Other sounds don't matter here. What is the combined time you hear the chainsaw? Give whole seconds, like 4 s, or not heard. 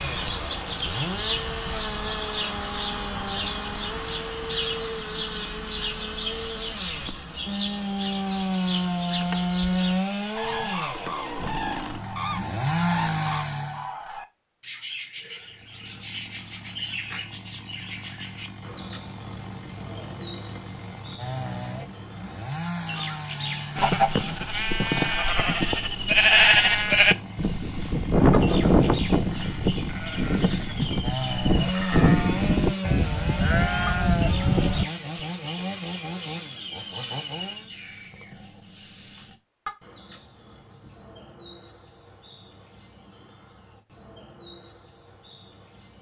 36 s.